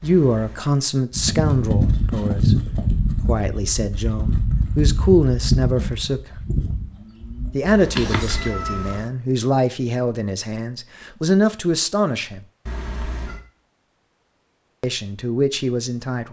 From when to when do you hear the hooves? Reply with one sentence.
The hooves can be heard from 1.1 to 8.5 s.